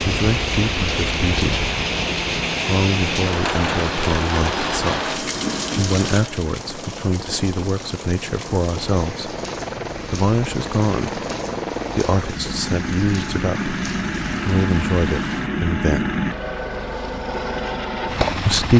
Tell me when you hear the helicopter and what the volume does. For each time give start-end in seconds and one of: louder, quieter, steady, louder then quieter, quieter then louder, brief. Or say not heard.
0.0-18.7 louder.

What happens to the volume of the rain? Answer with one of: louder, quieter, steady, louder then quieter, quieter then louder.
quieter.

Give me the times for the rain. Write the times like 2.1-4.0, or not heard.
0.0-15.5.